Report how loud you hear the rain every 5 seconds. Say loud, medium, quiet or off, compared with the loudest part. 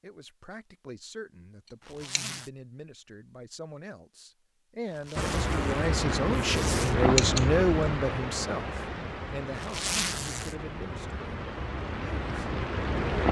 off, loud, loud.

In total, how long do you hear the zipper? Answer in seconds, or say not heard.
4 s.